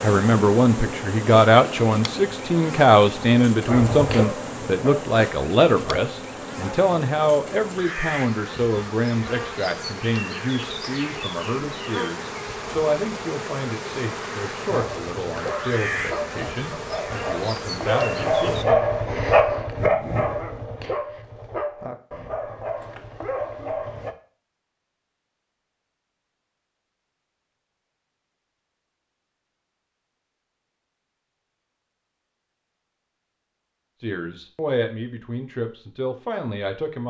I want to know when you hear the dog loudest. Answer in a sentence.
The loudest moment of the dog is at 19 seconds.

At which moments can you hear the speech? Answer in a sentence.
The speech can be heard from 0.0 to 18.8 s and from 34.0 to 37.0 s.